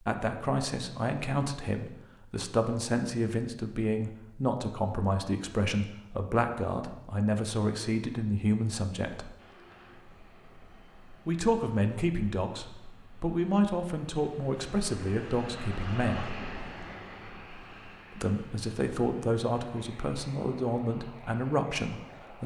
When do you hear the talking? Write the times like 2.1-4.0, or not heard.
0.1-9.3, 11.2-16.4, 18.1-22.4.